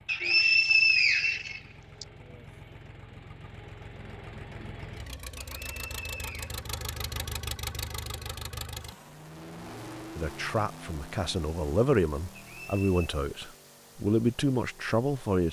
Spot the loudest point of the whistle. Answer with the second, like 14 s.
1 s.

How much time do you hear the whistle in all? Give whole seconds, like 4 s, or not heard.
4 s.